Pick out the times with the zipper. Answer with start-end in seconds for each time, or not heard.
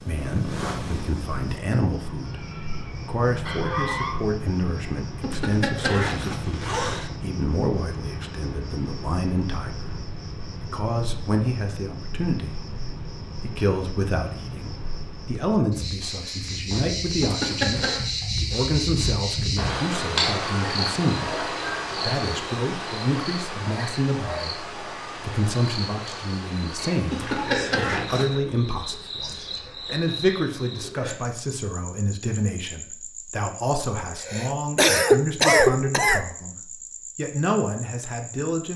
5.2-7.1, 17.2-18.1, 27.1-28.4.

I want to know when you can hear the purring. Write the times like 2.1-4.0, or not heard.
0.0-1.6.